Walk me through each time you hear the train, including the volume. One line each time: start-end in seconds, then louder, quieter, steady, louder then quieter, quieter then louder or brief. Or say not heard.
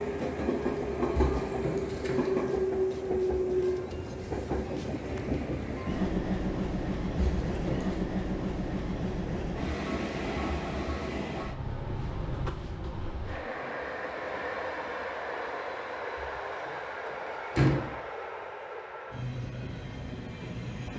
0.0-20.9 quieter.